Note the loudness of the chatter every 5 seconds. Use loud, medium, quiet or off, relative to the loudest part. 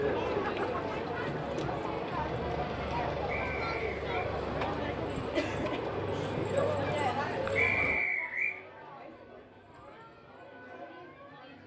loud, loud, quiet.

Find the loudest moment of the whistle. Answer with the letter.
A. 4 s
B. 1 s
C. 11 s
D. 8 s
D.